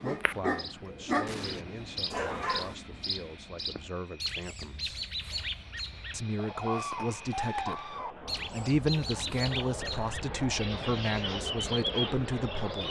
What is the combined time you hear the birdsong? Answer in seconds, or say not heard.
13 s.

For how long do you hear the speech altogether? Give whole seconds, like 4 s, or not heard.
12 s.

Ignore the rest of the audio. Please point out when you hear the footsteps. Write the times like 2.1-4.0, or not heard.
not heard.